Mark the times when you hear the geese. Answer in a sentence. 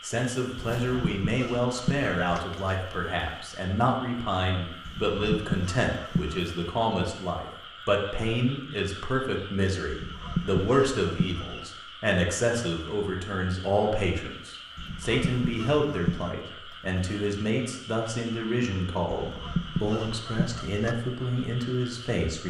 You can hear the geese from 0.8 to 2.4 s, from 4.8 to 6.4 s, from 9.9 to 11.6 s, from 14.8 to 16.4 s and from 19.1 to 20.9 s.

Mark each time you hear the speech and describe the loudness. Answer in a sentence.
You can hear the speech from 0.0 to 22.4 s, at a steady volume.